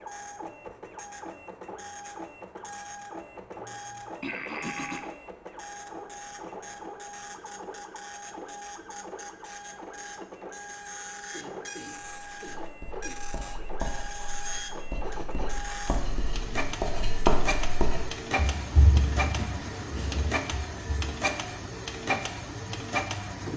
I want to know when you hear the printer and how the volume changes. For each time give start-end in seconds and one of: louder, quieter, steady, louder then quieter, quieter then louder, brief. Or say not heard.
0.0-23.5 louder.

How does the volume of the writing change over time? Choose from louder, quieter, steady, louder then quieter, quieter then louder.
louder then quieter.